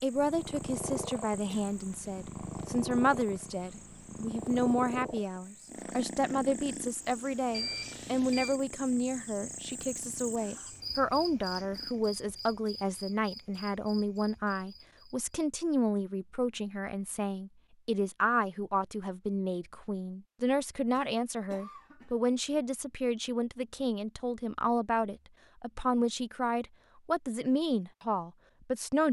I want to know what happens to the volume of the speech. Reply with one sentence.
The volume of the speech stays about the same.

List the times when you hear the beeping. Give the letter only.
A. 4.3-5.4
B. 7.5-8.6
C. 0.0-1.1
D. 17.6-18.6
B.